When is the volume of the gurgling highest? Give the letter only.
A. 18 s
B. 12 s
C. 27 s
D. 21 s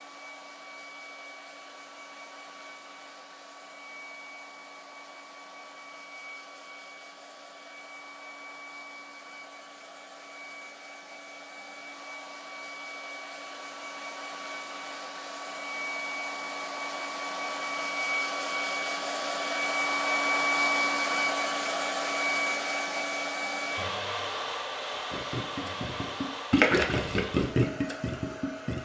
C.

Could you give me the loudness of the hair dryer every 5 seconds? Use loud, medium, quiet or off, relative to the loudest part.
quiet, quiet, quiet, loud, loud, medium.